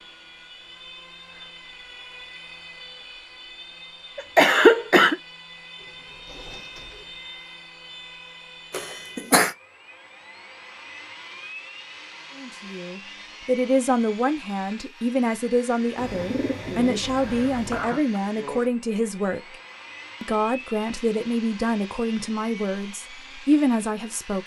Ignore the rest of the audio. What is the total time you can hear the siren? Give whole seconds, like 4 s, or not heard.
not heard.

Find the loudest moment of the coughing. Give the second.
5 s.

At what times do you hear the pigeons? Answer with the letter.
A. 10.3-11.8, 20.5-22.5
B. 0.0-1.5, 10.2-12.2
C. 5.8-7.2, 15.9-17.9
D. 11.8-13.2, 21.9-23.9
C.